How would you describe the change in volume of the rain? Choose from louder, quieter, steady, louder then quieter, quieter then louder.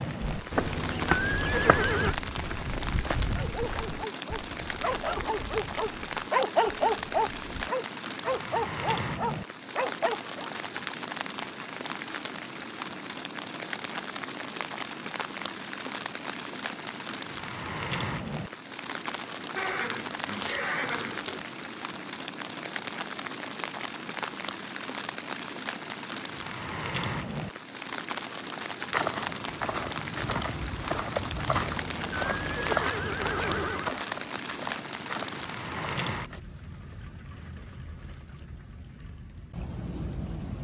steady.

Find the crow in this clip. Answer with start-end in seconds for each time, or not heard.
not heard.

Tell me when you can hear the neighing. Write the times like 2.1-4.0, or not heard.
0.5-2.1, 19.6-21.4, 31.6-34.0.